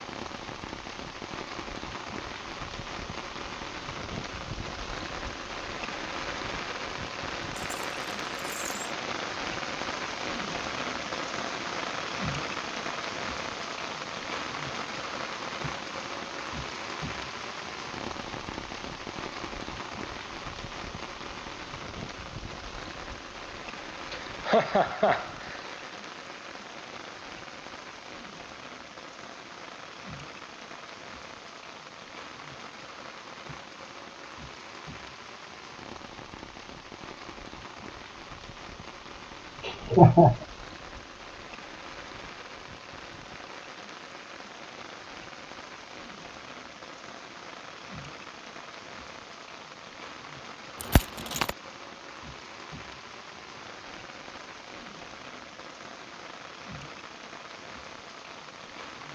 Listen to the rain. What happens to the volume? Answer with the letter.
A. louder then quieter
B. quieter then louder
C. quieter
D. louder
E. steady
C.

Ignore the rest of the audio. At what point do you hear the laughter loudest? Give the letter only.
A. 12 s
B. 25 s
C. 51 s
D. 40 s
D.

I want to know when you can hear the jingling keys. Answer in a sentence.
The jingling keys can be heard from 7.5 to 8.8 s and from 50.8 to 51.5 s.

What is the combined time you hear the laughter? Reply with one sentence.
You can hear the laughter for 2 seconds altogether.